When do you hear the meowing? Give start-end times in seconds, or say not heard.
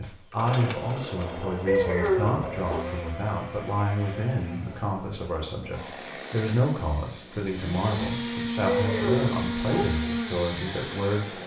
1.6-2.8, 8.7-9.8.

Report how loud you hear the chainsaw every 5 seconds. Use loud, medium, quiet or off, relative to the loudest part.
medium, loud, loud.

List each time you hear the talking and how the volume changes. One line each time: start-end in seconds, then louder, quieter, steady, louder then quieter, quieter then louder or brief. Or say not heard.
0.0-11.4 steady.